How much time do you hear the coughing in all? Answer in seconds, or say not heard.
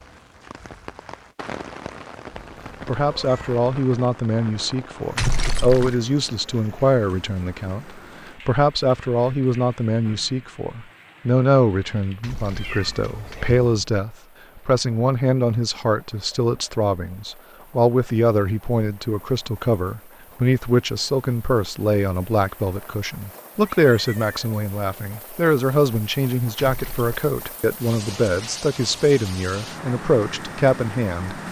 3 s.